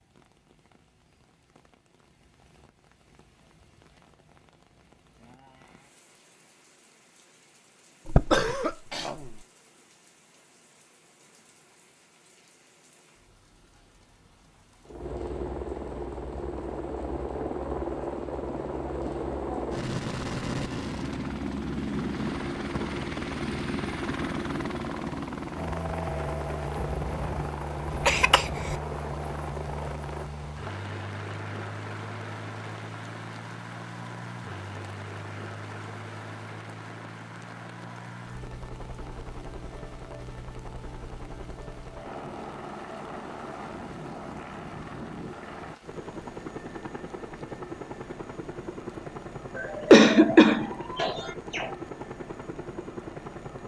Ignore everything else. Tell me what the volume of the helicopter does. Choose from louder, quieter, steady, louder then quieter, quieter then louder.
quieter.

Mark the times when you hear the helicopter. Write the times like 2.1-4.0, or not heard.
14.8-53.6.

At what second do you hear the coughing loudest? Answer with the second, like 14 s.
50 s.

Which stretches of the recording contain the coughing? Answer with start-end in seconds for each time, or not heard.
8.1-9.3, 26.8-28.8, 49.5-51.8.